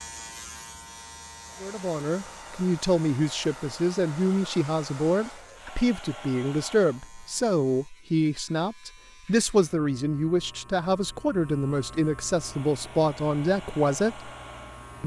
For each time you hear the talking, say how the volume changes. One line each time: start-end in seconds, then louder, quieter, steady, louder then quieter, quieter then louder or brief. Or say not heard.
1.6-14.3 steady.